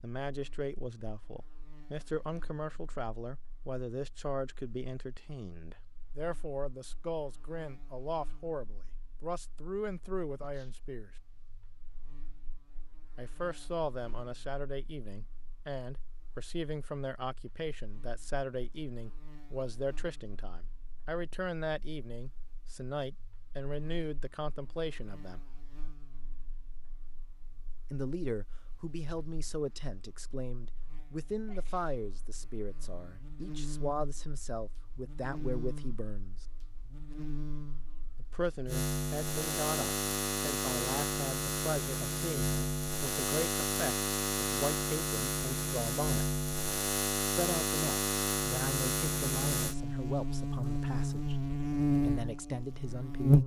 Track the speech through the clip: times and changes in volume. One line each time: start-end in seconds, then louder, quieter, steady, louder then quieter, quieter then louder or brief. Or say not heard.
0.0-11.1 steady
13.2-25.4 steady
27.9-36.5 steady
38.1-46.3 steady
47.4-53.4 quieter then louder.